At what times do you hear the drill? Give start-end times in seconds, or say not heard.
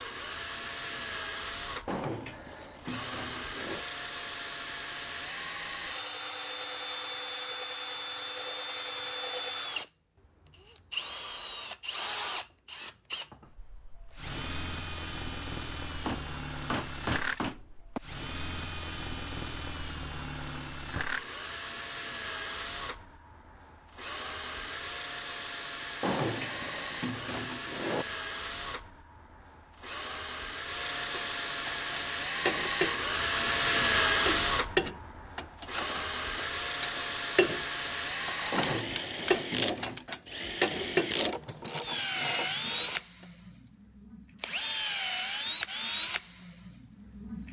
0.0-47.4.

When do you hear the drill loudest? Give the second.
34 s.